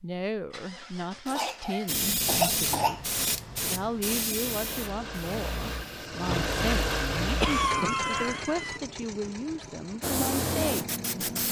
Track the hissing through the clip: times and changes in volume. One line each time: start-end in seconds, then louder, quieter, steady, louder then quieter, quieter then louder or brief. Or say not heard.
1.9-6.1 quieter
10.0-11.4 brief.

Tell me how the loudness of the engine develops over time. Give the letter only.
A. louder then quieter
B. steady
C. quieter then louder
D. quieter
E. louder
A.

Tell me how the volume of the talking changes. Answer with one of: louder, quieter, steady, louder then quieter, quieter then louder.
steady.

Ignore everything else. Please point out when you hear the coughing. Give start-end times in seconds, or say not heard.
1.2-3.0, 7.4-8.8.